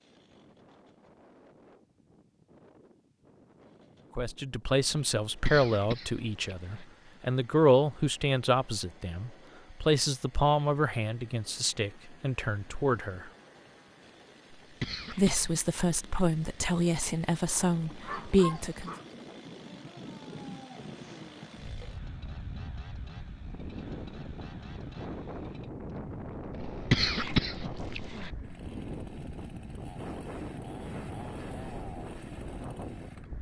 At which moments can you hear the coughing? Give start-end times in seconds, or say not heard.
5.3-6.8, 14.6-15.5, 26.8-28.3.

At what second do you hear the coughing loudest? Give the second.
27 s.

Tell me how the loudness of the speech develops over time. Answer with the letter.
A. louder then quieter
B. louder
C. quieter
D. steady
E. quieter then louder
D.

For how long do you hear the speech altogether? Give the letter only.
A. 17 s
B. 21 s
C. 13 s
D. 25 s
C.